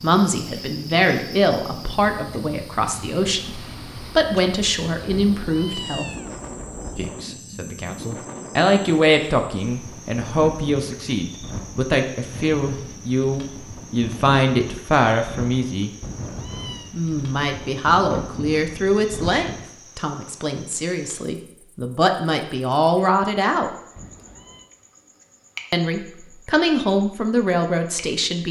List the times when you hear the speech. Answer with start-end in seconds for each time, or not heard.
0.0-6.0, 7.0-15.9, 16.9-23.7, 25.7-28.4.